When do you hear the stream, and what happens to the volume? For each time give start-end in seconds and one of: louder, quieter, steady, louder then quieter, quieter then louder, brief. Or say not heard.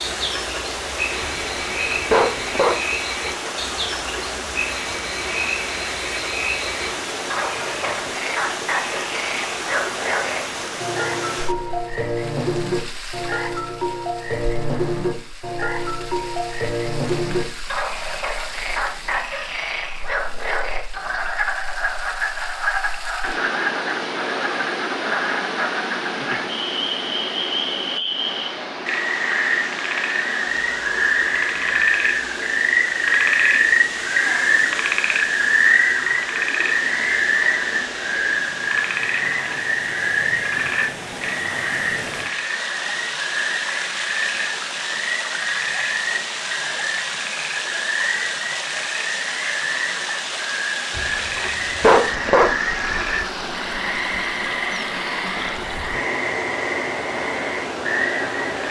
0.0-58.6 quieter then louder.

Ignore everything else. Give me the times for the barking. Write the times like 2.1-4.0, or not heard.
1.2-2.8, 51.0-52.5.